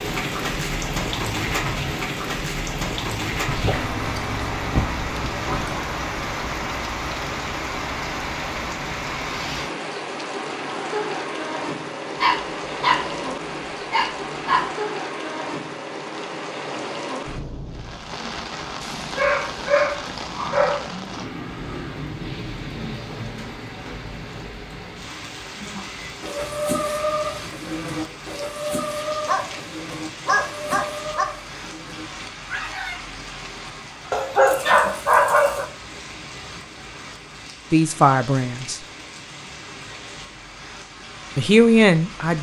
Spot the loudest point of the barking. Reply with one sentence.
The volume of the barking peaks at 35 seconds.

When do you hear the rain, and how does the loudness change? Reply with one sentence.
The rain can be heard from 0.0 to 42.3 s, getting quieter.